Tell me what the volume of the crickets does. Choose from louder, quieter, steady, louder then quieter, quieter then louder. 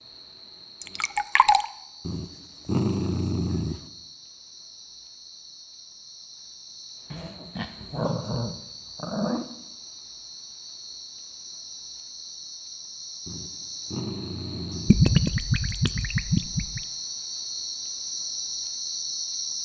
louder.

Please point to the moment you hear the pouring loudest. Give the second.
15 s.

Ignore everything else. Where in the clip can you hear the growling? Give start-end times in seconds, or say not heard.
2.0-3.8, 7.1-9.5, 13.2-15.0.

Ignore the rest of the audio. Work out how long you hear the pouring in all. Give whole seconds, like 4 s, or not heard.
3 s.